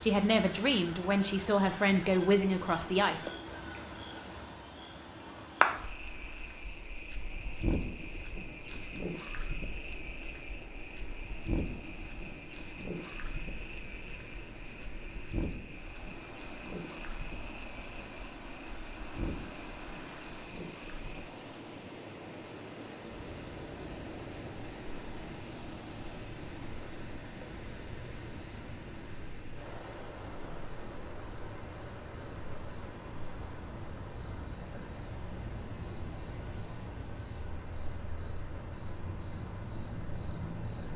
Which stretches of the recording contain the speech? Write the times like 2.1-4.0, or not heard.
0.0-3.2.